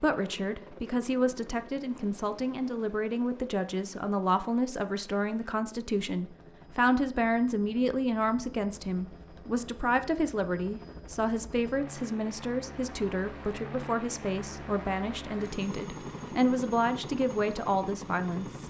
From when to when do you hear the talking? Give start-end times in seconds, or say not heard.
0.0-18.6.